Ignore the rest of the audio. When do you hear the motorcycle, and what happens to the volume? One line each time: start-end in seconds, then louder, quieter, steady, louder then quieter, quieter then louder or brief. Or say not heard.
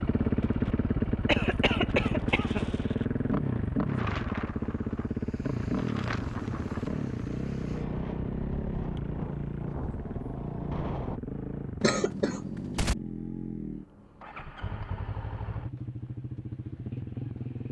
0.0-17.6 quieter.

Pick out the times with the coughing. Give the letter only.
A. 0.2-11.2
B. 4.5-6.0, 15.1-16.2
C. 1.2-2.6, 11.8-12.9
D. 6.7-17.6
C.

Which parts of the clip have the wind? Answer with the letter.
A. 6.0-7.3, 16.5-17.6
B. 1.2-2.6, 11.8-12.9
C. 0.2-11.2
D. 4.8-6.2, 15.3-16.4
C.